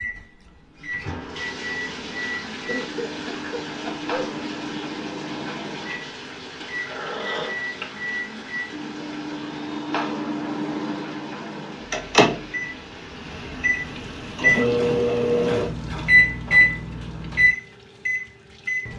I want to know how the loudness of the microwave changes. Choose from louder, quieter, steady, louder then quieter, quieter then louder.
louder.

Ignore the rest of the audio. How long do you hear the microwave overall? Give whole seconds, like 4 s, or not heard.
19 s.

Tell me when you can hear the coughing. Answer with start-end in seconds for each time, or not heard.
2.6-4.2, 6.6-7.8, 14.4-16.1.